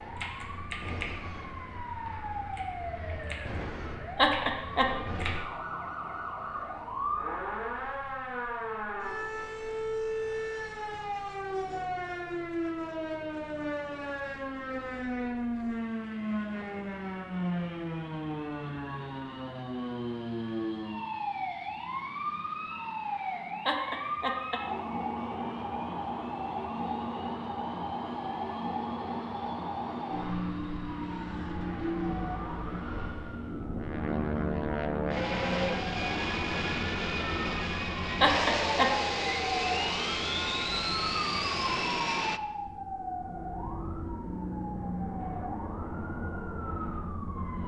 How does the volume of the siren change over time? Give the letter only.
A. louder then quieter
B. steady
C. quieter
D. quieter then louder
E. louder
B.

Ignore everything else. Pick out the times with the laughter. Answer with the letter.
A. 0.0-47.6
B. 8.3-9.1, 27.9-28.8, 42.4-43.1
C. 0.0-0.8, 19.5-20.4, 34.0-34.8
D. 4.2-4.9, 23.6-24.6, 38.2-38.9
D.